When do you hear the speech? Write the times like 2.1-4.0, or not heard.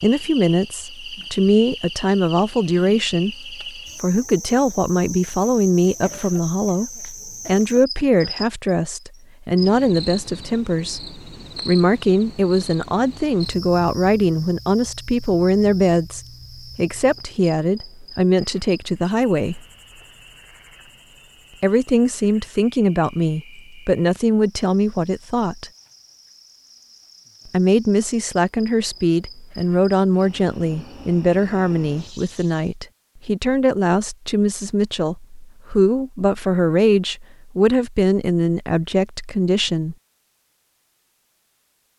0.0-19.6, 21.6-25.7, 27.4-40.0.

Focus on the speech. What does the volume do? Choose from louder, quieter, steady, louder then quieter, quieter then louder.
steady.